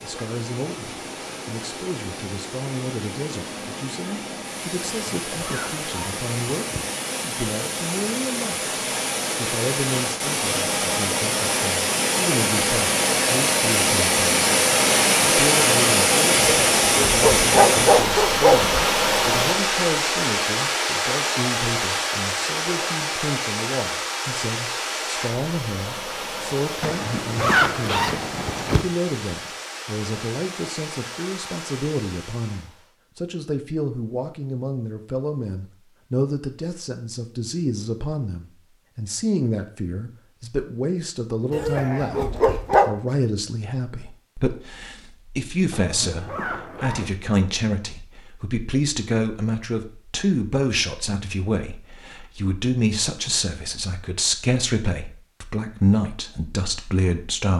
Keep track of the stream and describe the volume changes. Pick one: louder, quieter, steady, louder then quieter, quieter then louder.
louder then quieter.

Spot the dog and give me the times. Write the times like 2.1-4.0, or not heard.
16.4-18.9, 41.5-42.9.